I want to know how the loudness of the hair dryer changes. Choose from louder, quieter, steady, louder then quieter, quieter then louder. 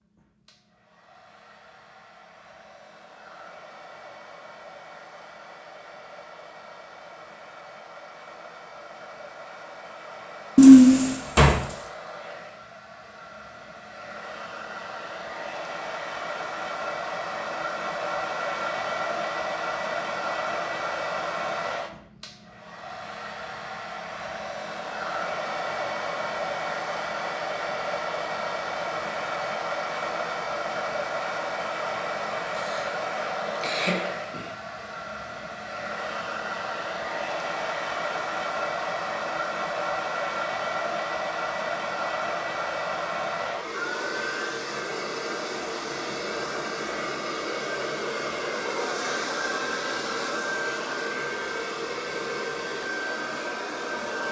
louder.